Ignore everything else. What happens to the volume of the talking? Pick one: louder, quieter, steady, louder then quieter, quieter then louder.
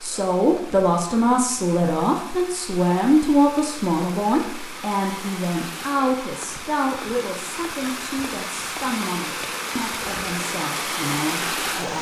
quieter.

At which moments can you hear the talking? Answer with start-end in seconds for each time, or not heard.
0.0-11.9.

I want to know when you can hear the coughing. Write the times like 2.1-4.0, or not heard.
not heard.